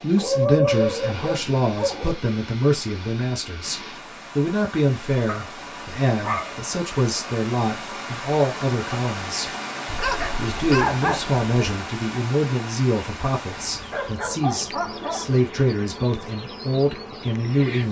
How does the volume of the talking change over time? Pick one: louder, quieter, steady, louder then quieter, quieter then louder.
steady.